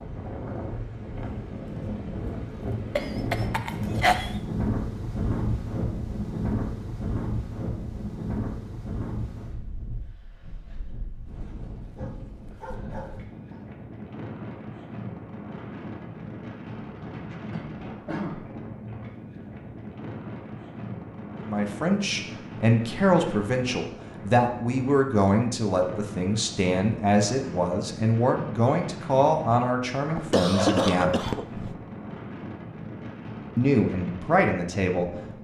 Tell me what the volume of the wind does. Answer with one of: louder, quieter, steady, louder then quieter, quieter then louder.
quieter.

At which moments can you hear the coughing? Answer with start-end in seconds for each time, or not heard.
3.0-4.3, 17.5-18.6, 30.1-31.8.